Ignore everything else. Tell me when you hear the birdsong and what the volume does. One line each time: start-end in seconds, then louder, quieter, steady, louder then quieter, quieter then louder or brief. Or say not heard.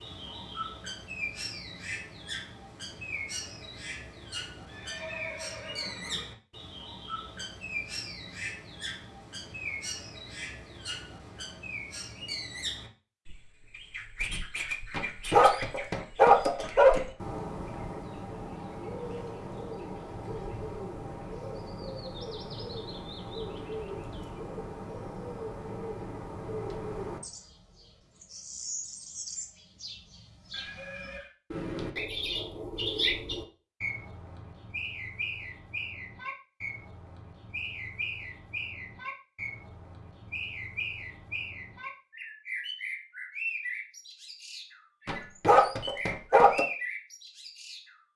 0.0-48.1 steady.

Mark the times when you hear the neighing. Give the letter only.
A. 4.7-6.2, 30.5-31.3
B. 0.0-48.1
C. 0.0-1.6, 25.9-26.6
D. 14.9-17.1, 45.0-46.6
A.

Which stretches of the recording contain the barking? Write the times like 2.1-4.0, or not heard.
14.9-17.1, 45.0-46.6.